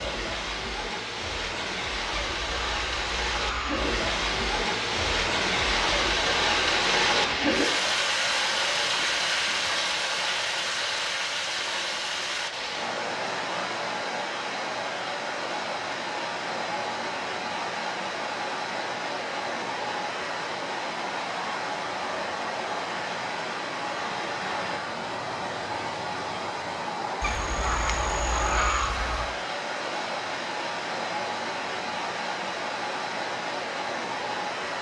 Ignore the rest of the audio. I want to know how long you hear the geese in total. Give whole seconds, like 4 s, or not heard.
4 s.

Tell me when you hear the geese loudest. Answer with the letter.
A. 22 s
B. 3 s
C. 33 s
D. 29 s
D.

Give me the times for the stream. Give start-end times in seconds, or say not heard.
0.0-34.7.